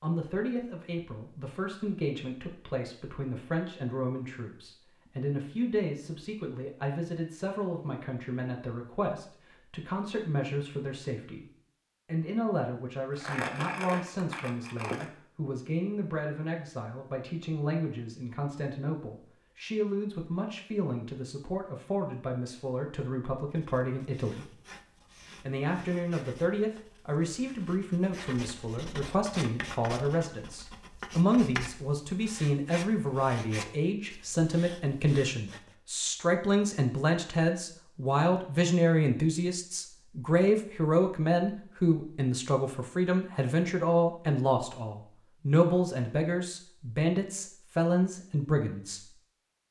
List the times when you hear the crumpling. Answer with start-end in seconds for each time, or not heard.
13.2-15.1.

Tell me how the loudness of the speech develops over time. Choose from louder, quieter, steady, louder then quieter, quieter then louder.
louder.